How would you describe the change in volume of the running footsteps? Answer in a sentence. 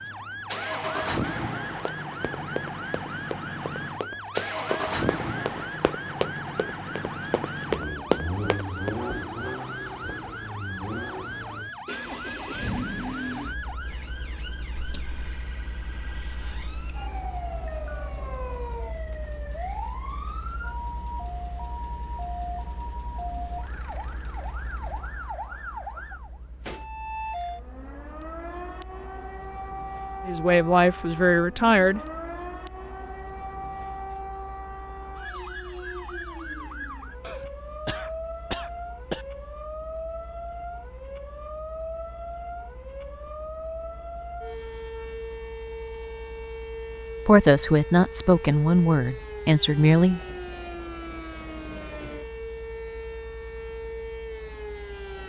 The volume of the running footsteps goes up.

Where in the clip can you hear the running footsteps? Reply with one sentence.
You can hear the running footsteps from 1.8 to 8.9 s.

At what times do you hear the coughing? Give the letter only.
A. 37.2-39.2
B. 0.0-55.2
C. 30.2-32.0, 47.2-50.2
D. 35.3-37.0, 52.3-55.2
A.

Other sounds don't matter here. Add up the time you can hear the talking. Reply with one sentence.
You can hear the talking for 5 seconds altogether.